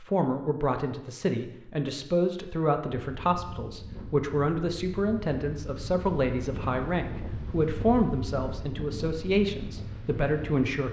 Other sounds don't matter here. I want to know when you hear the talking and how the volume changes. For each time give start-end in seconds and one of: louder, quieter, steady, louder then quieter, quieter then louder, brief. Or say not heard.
0.0-10.8 steady.